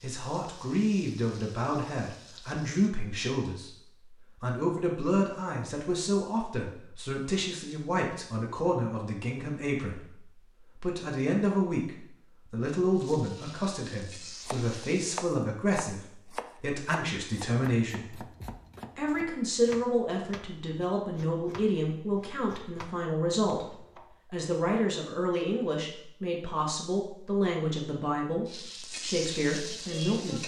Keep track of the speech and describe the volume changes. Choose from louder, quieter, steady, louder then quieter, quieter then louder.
steady.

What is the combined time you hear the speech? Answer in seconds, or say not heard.
29 s.